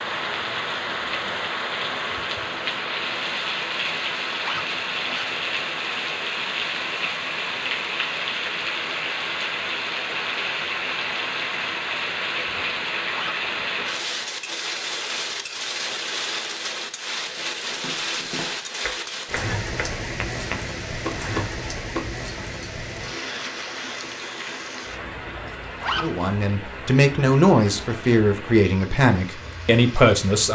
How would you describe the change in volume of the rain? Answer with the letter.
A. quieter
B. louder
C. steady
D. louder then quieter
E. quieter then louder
A.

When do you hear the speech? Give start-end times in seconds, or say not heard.
26.0-30.5.